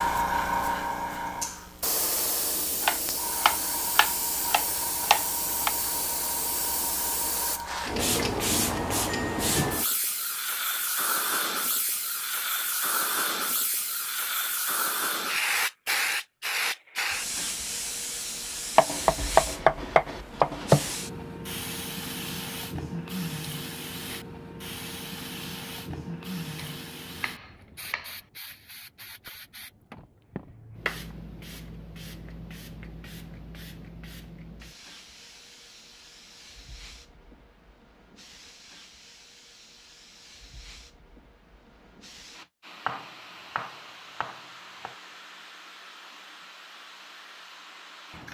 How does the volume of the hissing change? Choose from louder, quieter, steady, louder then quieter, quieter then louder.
quieter.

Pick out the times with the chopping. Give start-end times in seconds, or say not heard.
2.8-5.8, 18.8-20.9, 26.6-28.1, 42.9-45.0.